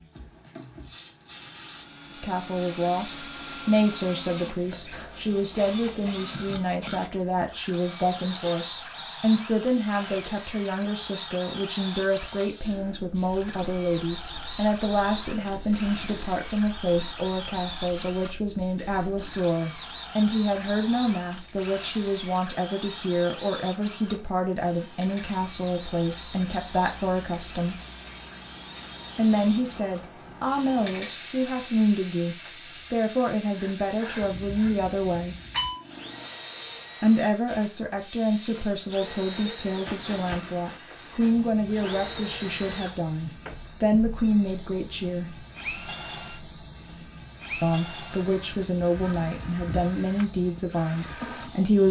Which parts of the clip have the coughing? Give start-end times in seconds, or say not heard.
not heard.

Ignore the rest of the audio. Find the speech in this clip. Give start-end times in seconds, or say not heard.
2.1-27.8, 29.1-35.4, 37.0-45.5, 47.6-51.8.